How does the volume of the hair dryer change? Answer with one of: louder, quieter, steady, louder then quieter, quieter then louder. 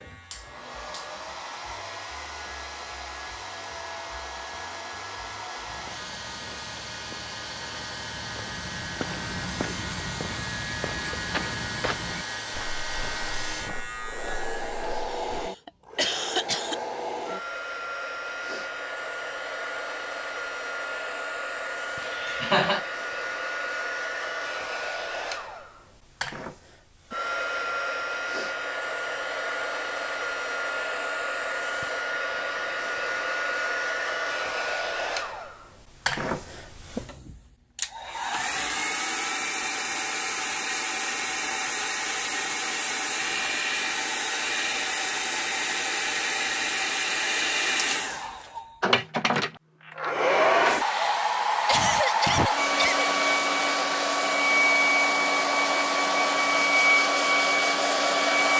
louder.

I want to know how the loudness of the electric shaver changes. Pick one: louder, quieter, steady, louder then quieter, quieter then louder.
louder.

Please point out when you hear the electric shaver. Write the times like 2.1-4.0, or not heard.
0.0-14.9.